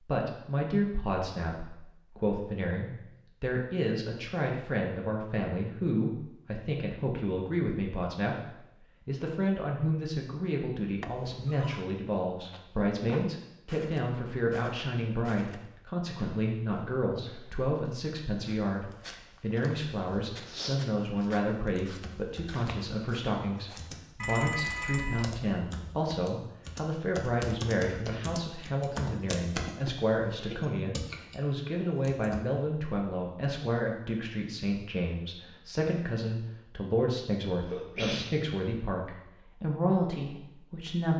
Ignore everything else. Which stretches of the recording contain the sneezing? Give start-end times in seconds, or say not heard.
37.6-38.3.